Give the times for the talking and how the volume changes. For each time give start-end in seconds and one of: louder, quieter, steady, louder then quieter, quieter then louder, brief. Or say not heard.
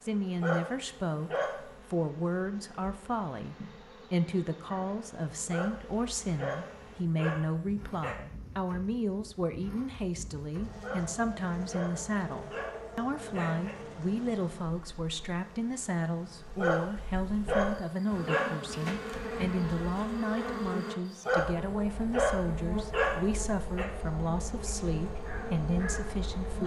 0.0-26.6 steady.